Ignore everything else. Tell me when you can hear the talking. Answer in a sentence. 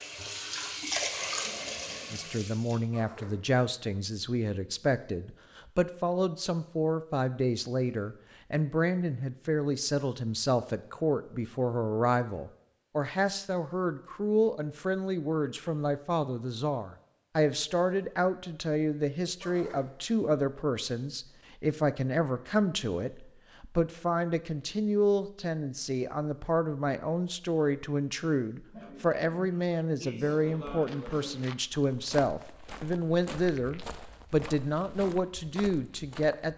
The talking can be heard from 2.1 to 36.5 s.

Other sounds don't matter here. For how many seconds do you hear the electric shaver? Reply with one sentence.
You can't hear the electric shaver here.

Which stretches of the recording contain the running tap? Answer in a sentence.
You can hear the running tap from 0.0 to 2.8 s.